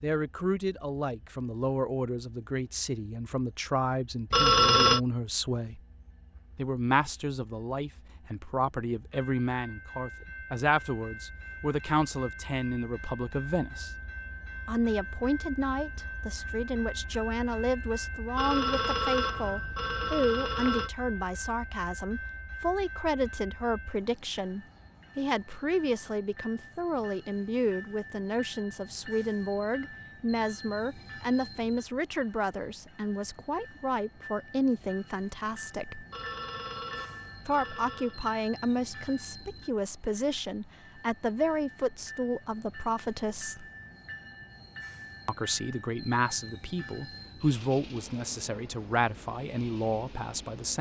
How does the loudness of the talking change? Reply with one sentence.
The volume of the talking stays about the same.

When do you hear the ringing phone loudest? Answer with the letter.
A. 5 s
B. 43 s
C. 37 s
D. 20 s
A.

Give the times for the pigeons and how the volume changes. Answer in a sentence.
The pigeons can't be heard in this clip.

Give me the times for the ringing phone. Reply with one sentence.
You can hear the ringing phone from 4.3 to 5.0 s, from 18.4 to 20.9 s and from 36.1 to 38.2 s.